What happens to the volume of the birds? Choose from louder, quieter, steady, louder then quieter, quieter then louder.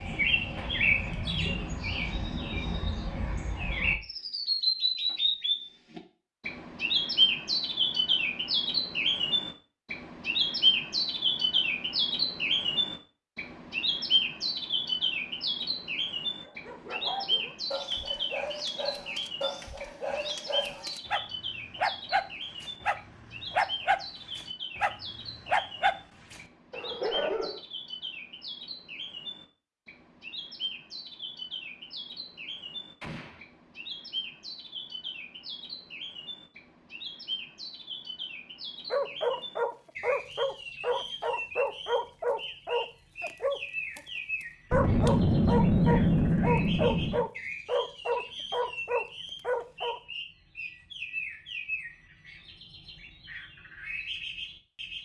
quieter.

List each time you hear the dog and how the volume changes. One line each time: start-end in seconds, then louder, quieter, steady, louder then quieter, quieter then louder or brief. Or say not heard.
16.4-27.6 louder
38.9-44.0 steady
44.7-50.0 steady.